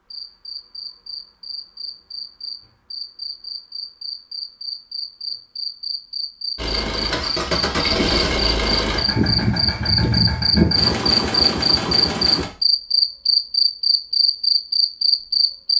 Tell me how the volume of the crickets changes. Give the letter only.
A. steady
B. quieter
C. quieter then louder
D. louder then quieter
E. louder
E.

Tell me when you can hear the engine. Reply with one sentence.
You can hear the engine from 6.5 to 12.5 s.